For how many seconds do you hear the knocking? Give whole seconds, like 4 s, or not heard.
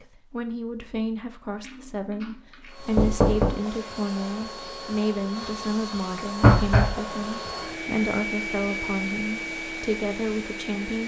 2 s.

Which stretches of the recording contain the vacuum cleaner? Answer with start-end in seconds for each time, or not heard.
2.6-11.0.